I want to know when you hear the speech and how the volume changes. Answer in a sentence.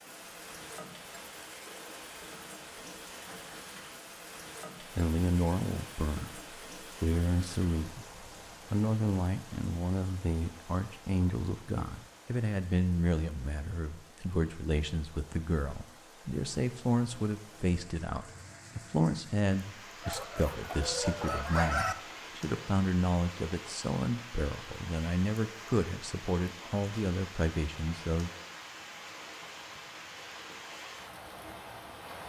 You can hear the speech from 4.9 to 28.3 s, at a steady volume.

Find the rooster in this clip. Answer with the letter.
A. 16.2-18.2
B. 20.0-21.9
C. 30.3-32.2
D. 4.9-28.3
B.